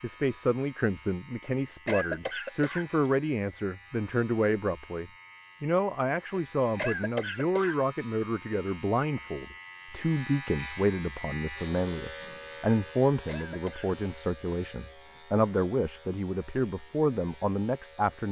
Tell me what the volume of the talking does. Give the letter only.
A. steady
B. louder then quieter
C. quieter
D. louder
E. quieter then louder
A.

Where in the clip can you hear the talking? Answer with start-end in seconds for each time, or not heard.
0.0-18.2.